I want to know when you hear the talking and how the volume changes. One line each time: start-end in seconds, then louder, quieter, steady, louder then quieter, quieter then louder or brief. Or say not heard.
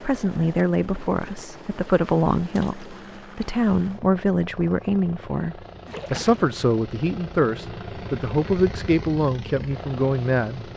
0.0-10.7 steady.